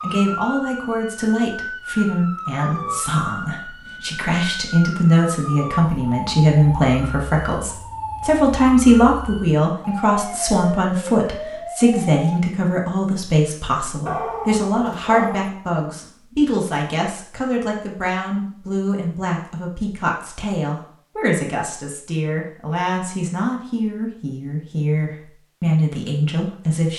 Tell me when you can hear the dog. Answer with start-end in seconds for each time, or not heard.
14.1-15.5.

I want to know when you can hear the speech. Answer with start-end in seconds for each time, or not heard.
0.0-26.9.